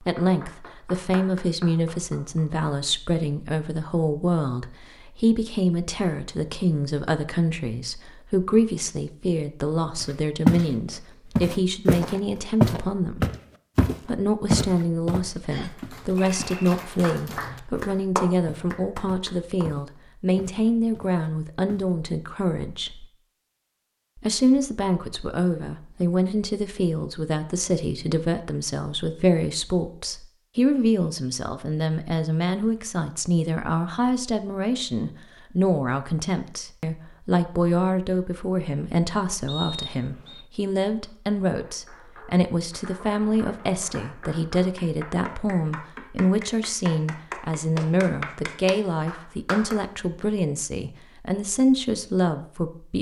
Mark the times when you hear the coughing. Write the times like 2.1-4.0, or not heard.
not heard.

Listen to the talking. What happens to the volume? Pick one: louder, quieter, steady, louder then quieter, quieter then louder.
steady.